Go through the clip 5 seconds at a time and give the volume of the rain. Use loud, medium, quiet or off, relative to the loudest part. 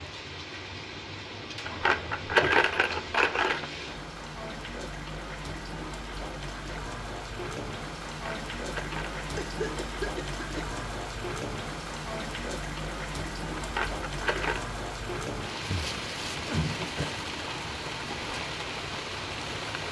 medium, loud, loud, loud.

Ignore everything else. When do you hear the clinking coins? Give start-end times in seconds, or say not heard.
1.6-3.7, 8.1-9.2, 13.6-14.7.